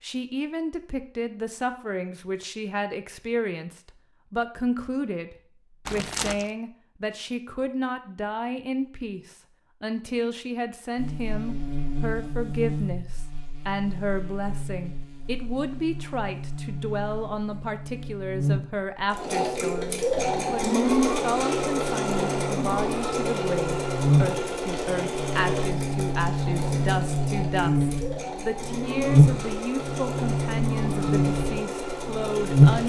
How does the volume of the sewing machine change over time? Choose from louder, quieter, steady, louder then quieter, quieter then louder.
quieter.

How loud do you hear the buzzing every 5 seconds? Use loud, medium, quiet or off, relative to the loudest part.
off, off, quiet, quiet, medium, loud, loud.